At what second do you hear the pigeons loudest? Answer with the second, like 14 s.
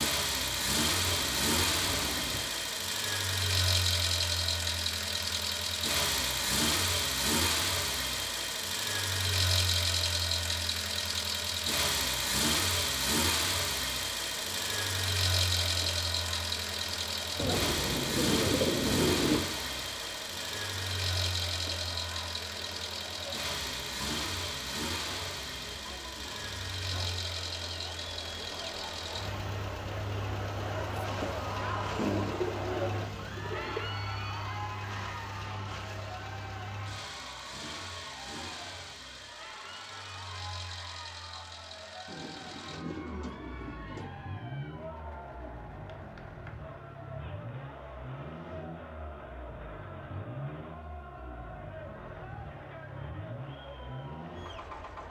19 s.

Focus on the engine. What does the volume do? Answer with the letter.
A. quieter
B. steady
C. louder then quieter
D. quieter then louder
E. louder
A.